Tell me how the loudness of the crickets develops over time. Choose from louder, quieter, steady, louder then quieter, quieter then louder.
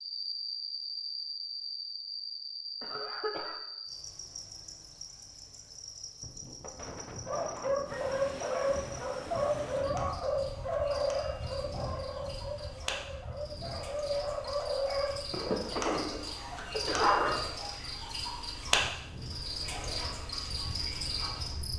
quieter then louder.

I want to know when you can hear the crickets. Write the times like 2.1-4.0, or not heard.
0.0-21.7.